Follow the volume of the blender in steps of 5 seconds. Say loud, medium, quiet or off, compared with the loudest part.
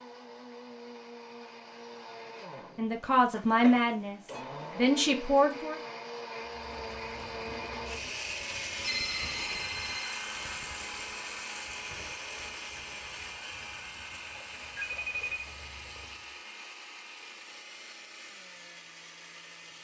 medium, loud, loud, medium.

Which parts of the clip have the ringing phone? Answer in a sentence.
The ringing phone can be heard from 3.3 to 4.4 s, from 8.8 to 10.2 s and from 14.8 to 15.4 s.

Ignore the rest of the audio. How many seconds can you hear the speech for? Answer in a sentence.
You can hear the speech for 3 seconds altogether.